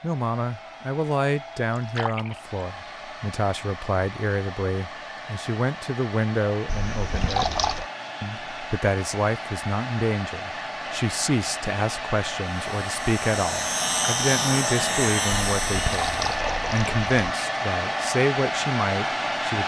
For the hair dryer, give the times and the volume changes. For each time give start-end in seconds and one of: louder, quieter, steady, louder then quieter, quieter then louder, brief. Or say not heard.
0.0-19.6 louder.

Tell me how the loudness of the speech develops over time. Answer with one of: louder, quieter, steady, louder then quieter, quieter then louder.
steady.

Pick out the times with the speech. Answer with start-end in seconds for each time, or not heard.
0.0-7.6, 8.2-19.6.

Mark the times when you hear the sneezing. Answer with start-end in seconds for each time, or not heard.
not heard.